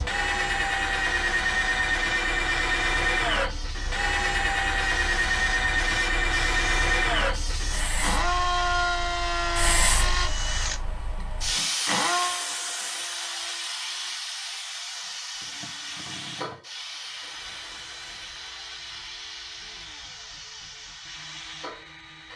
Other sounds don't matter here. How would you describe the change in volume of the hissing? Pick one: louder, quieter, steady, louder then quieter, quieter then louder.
louder then quieter.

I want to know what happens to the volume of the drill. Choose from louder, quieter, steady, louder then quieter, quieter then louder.
quieter.